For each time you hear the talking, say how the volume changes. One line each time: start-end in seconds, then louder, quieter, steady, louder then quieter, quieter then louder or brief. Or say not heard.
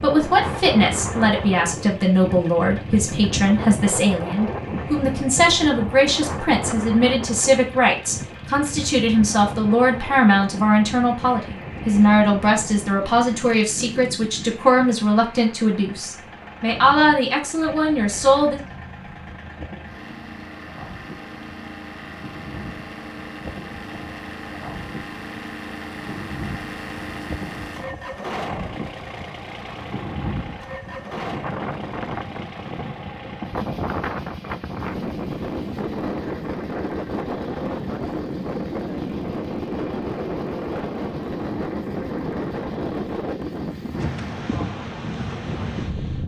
0.0-18.6 steady.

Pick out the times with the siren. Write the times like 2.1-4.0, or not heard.
not heard.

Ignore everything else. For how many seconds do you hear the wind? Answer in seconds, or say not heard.
46 s.